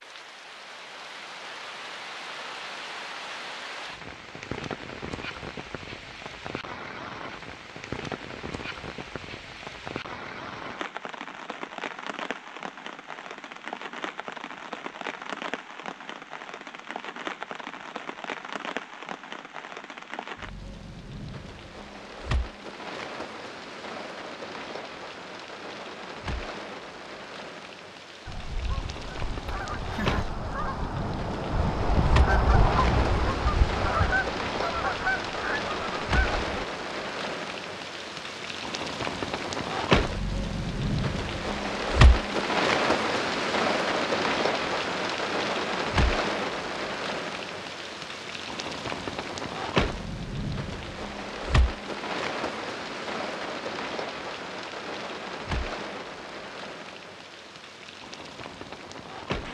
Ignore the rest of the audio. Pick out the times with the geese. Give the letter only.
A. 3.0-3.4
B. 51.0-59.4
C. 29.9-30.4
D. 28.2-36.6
D.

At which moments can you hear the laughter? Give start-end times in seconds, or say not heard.
29.9-30.4.